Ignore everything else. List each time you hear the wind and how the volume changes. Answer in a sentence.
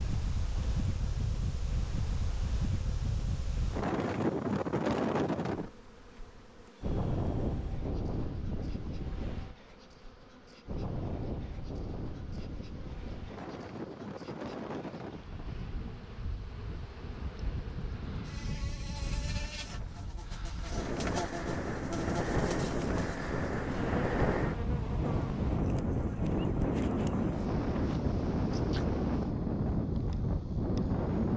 You can hear the wind from 0.0 to 31.3 s, getting quieter then louder.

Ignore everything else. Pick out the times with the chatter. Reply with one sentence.
You can't hear the chatter here.